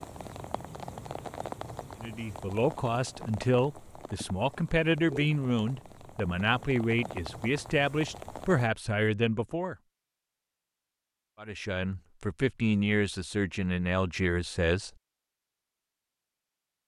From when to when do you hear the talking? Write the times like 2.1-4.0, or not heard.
2.0-9.8, 11.4-14.9.